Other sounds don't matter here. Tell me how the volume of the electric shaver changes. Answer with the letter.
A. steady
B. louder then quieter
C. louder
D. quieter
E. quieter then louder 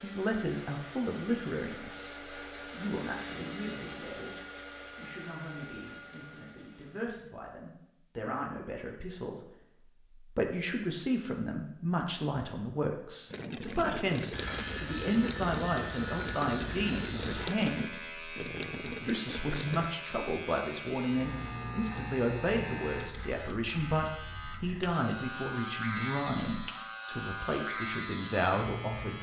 A.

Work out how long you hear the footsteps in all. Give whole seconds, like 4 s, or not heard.
not heard.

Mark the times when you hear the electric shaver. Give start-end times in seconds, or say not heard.
14.3-29.1.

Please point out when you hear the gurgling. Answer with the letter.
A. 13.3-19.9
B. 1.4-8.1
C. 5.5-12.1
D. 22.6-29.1
A.